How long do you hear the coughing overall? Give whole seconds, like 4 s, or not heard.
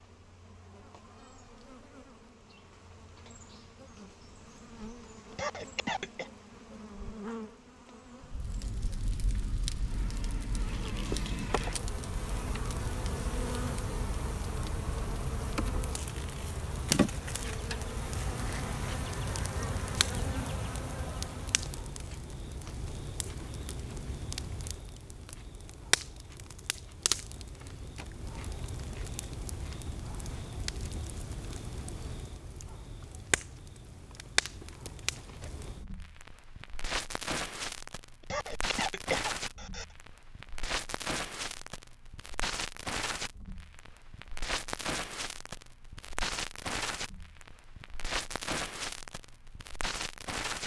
3 s.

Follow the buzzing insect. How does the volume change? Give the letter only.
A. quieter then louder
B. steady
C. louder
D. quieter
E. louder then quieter
C.